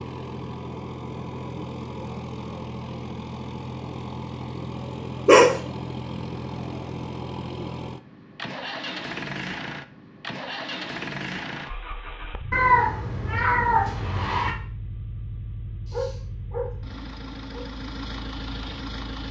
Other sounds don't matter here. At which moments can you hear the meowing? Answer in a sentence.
The meowing can be heard from 12.5 to 14.6 s.